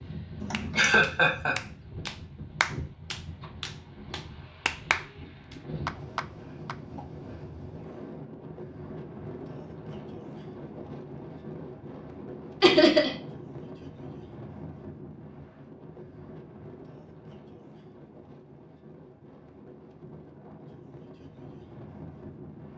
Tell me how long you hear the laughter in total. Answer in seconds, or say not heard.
2 s.